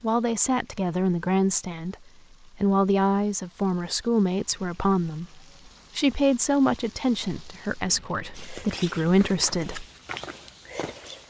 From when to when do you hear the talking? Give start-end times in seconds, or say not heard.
0.0-1.9, 2.5-9.8.